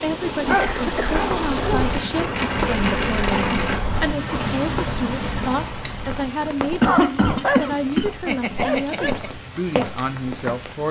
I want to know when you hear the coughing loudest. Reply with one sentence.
The loudest moment of the coughing is at 7 seconds.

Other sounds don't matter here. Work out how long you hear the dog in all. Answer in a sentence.
You can hear the dog for 4 seconds altogether.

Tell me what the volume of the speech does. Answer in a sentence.
The volume of the speech stays about the same.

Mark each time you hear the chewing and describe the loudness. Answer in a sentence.
The chewing can't be heard in this clip.